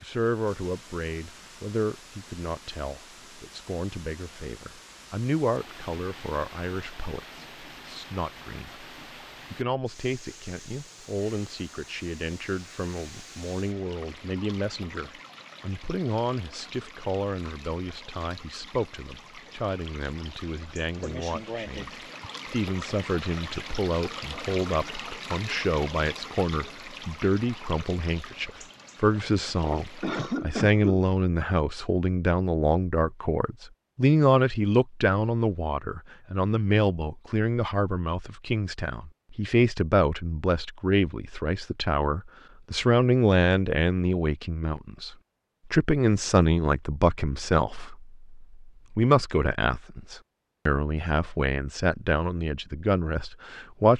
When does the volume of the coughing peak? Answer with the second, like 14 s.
30 s.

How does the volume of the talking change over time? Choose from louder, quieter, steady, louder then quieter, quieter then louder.
louder.